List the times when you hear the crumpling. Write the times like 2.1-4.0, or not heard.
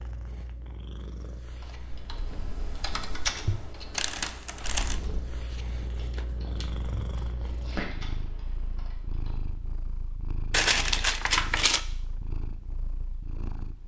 4.0-5.0, 10.5-11.8.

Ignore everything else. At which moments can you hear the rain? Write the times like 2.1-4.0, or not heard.
not heard.